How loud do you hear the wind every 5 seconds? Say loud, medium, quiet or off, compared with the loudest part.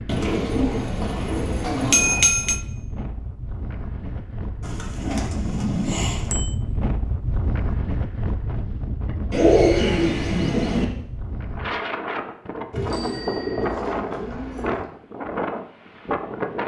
medium, loud, loud, loud.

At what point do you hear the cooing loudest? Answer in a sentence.
The volume of the cooing peaks at 10 seconds.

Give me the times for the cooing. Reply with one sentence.
You can hear the cooing from 0.1 to 2.2 s, from 4.6 to 6.3 s, from 9.3 to 10.8 s and from 12.7 to 14.8 s.